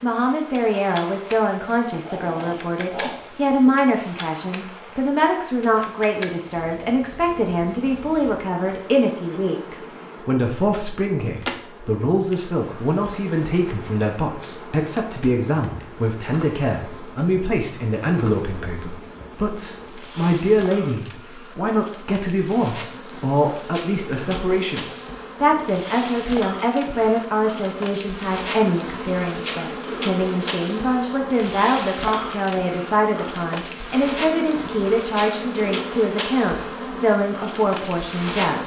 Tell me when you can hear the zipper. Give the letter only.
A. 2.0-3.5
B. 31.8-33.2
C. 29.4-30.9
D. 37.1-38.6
A.